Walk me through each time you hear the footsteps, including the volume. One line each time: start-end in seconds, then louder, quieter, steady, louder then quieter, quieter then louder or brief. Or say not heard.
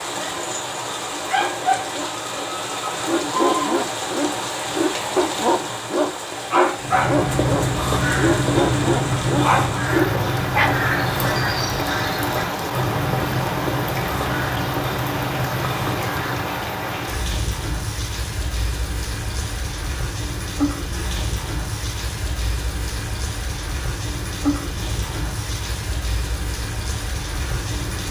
not heard.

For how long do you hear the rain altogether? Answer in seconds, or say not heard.
28 s.